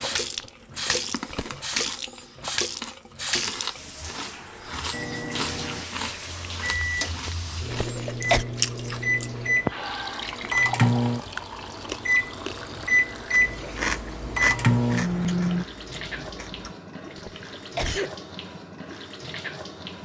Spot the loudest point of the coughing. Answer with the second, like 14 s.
8 s.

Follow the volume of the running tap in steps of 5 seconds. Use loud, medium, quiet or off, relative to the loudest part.
loud, loud, medium, medium.